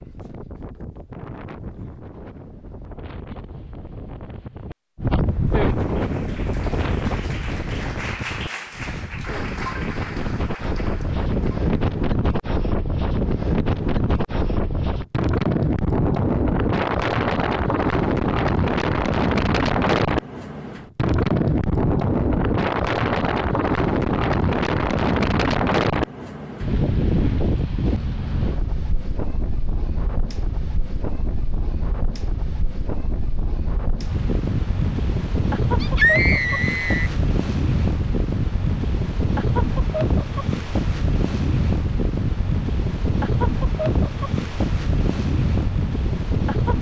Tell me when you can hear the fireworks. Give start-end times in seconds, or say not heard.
not heard.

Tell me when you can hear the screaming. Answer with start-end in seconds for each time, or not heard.
35.8-37.1.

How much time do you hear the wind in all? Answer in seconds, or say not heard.
47 s.